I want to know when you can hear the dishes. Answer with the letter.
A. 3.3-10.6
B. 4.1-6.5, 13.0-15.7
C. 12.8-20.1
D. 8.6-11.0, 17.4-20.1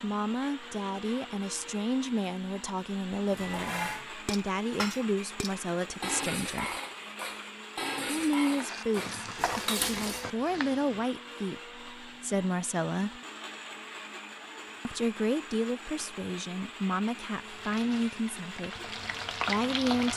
A.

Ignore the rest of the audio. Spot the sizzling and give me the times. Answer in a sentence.
You can hear the sizzling from 8.6 to 11.0 s and from 17.4 to 20.1 s.